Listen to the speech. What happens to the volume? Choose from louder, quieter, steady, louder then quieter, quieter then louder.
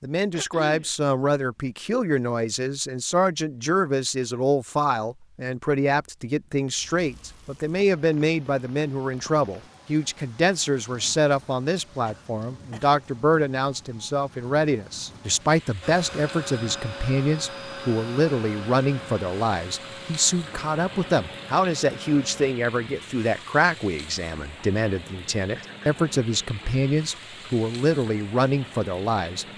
steady.